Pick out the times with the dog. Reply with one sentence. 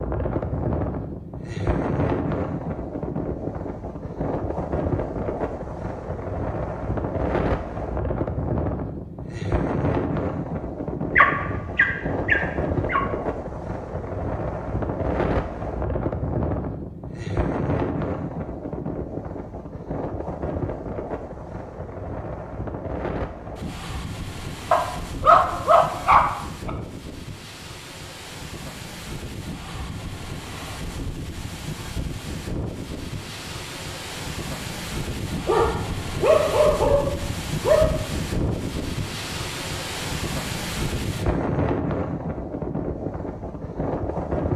You can hear the dog from 11.2 to 13.0 s, from 24.7 to 26.7 s and from 35.5 to 38.0 s.